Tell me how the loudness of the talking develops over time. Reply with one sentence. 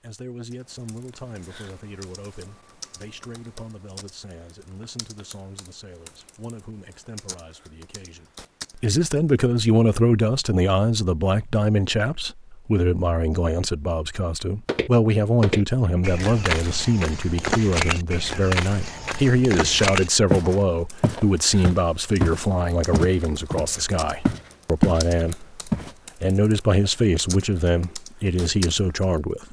The volume of the talking goes up.